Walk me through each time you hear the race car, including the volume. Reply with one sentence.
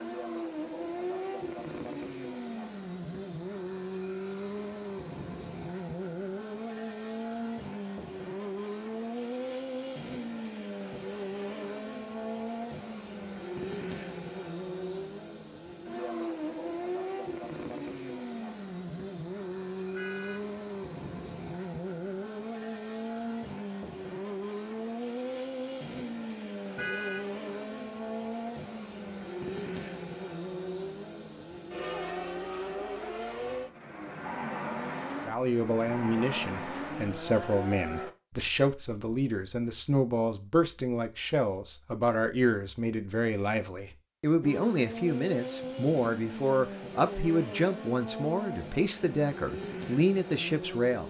You can hear the race car from 0.0 to 38.1 s, at a steady volume; and from 44.4 to 51.0 s, at a steady volume.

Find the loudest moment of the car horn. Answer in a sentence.
The volume of the car horn peaks at 27 seconds.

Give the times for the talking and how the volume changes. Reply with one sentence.
The talking can be heard from 35.2 to 51.0 s, at a steady volume.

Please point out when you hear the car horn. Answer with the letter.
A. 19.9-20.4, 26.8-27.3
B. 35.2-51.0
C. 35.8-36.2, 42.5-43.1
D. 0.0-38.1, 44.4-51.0
A.